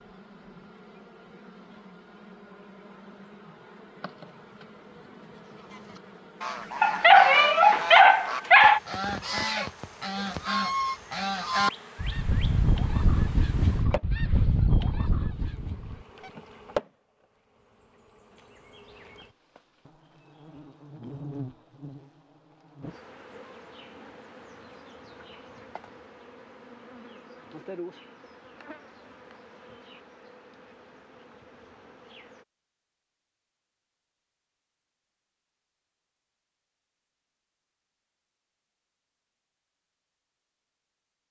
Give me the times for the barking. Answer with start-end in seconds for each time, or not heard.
6.8-8.8.